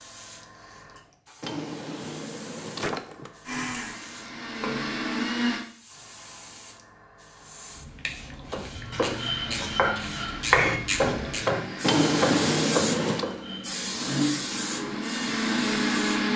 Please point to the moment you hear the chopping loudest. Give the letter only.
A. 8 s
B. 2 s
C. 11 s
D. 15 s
C.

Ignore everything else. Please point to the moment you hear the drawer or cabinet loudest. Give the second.
12 s.